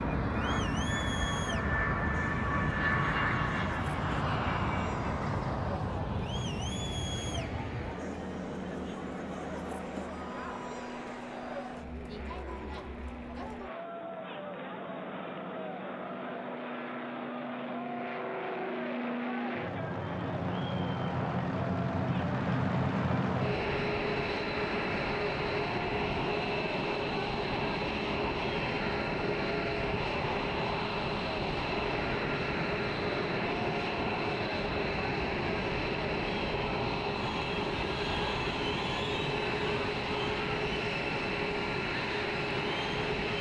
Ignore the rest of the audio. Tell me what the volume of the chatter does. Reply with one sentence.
The loudness of the chatter stays about the same.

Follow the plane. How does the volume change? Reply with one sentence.
The volume of the plane goes down, then up.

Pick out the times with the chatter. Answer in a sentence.
The chatter can be heard from 0.0 to 43.3 s.